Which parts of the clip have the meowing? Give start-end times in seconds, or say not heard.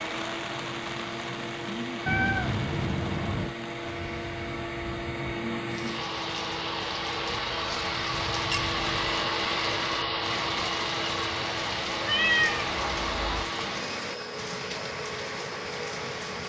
2.0-3.5, 8.1-9.2, 12.1-13.4.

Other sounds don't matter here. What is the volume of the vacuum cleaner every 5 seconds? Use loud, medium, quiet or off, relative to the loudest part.
medium, loud, loud, medium.